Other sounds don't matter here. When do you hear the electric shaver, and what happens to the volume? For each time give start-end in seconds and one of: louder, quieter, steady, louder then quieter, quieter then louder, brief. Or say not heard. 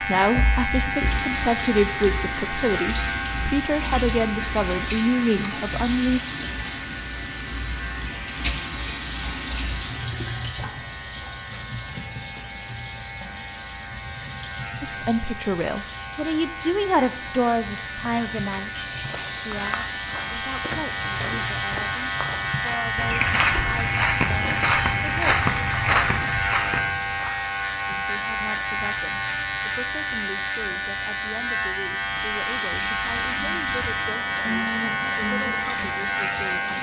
0.0-36.7 quieter then louder.